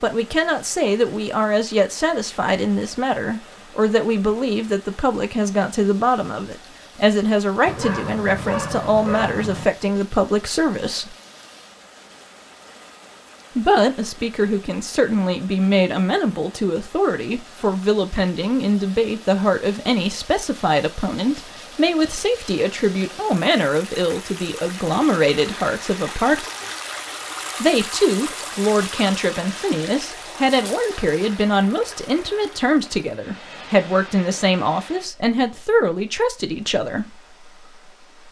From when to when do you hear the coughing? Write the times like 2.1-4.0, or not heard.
not heard.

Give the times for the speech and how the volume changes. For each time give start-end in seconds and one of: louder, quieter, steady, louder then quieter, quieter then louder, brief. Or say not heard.
0.0-11.2 steady
13.6-26.4 steady
27.6-37.0 steady.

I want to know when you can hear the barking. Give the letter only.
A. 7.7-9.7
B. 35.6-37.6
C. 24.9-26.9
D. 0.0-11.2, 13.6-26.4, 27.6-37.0
A.